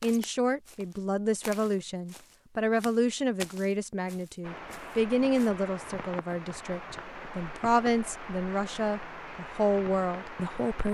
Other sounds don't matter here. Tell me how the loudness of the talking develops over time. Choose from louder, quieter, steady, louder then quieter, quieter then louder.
steady.